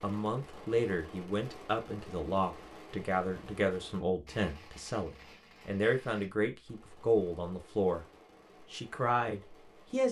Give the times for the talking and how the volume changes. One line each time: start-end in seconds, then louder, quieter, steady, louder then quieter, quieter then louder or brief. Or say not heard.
0.0-8.1 steady
8.7-10.0 brief.